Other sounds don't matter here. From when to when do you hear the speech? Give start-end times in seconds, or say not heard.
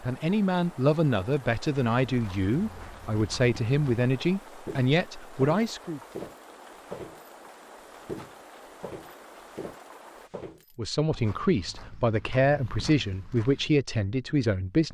0.0-6.0, 10.8-14.9.